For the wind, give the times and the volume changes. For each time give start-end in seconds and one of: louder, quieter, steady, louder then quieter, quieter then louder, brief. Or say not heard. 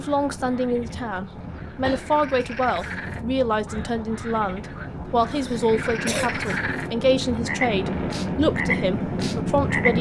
0.0-9.9 louder.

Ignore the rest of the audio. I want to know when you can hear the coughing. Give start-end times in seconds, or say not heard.
1.2-2.1, 5.3-6.3.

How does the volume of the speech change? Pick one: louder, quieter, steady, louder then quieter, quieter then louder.
steady.